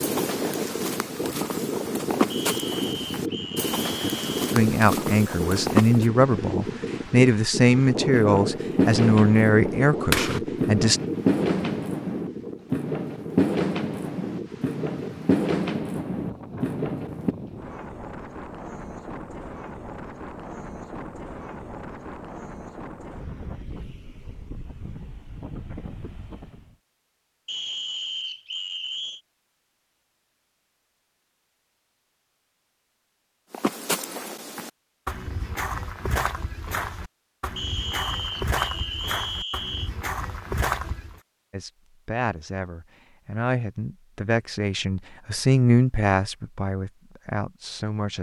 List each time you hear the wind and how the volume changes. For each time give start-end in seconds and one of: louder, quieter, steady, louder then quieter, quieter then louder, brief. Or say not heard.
0.0-26.8 quieter.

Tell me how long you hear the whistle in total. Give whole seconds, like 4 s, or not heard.
6 s.